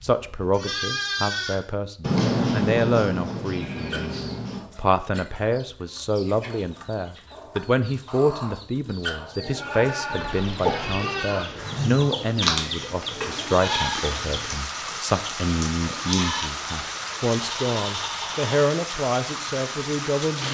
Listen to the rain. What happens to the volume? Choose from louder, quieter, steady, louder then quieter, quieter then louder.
louder.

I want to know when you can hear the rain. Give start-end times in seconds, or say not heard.
10.2-20.4.